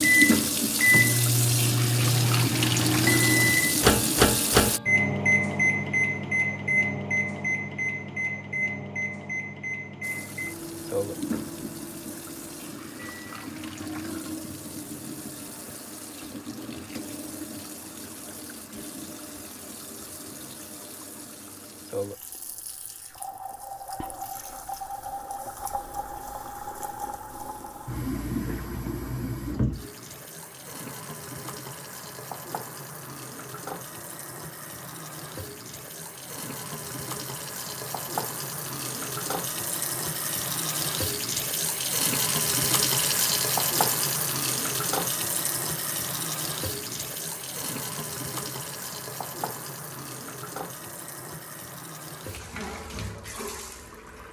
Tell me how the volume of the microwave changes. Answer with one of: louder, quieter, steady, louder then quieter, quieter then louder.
quieter.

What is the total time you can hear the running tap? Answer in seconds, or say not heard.
49 s.